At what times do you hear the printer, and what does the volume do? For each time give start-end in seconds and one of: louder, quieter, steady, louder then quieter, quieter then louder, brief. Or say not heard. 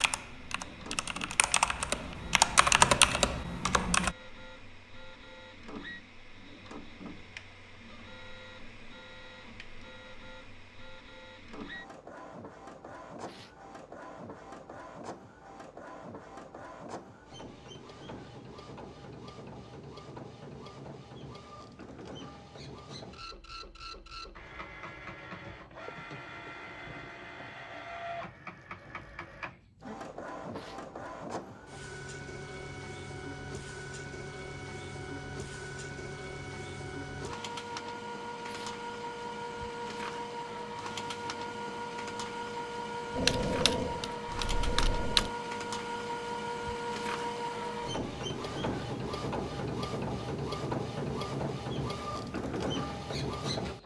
0.1-53.8 louder.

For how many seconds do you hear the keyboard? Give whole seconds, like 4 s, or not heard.
6 s.